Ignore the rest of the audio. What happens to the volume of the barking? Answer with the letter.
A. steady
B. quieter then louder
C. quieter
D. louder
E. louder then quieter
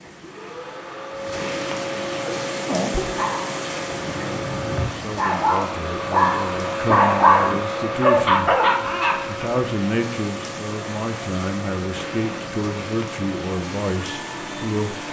D.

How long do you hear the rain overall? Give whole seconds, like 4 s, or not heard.
15 s.